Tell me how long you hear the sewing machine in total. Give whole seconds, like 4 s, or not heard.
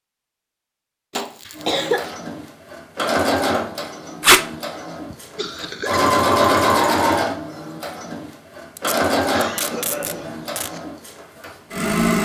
11 s.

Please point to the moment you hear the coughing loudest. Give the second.
2 s.